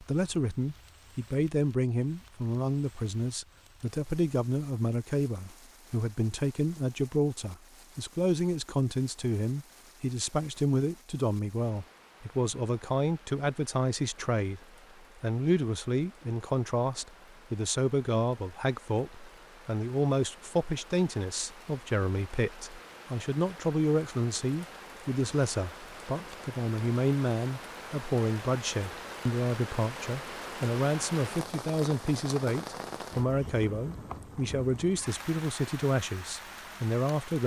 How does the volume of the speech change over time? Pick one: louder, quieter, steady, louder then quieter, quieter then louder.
steady.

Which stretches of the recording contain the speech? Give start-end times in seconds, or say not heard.
0.0-37.4.